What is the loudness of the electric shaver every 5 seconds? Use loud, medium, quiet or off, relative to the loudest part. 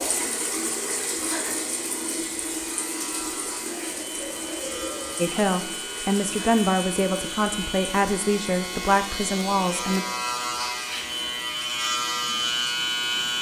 quiet, medium, loud.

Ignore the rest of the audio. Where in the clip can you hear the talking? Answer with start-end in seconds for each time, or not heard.
5.2-10.1.